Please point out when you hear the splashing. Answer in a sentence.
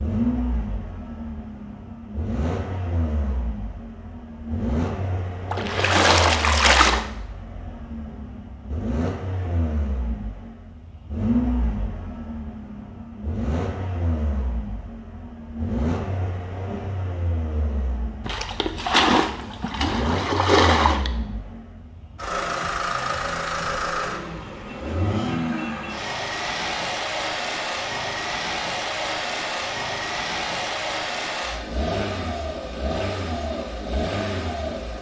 You can hear the splashing from 5.5 to 7.0 s and from 18.2 to 21.1 s.